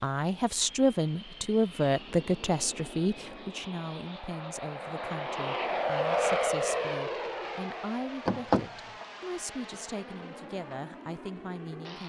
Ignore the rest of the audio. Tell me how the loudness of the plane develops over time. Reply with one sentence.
The volume of the plane goes up, then down.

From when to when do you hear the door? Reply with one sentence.
The door can be heard from 8.2 to 9.1 s.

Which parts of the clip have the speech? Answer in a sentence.
The speech can be heard from 0.0 to 12.0 s.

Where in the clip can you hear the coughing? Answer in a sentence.
You can't hear the coughing here.